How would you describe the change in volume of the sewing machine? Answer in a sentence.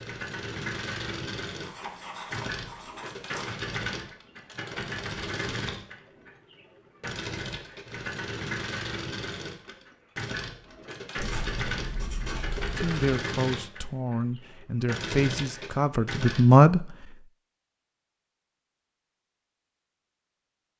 The volume of the sewing machine stays about the same.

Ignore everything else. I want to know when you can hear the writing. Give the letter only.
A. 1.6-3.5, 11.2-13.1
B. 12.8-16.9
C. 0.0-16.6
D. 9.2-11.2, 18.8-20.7
A.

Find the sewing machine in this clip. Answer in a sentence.
The sewing machine can be heard from 0.0 to 16.6 s.